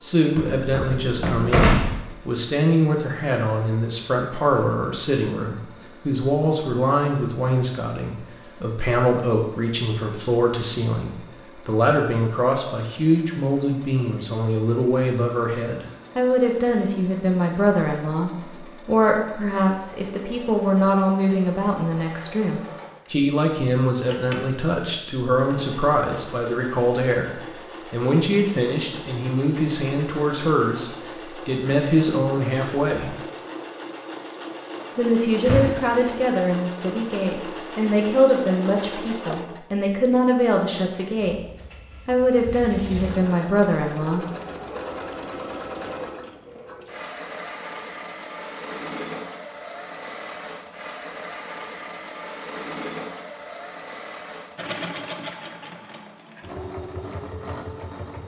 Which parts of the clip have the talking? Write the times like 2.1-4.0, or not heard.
0.0-33.1, 35.0-41.4, 42.0-44.2.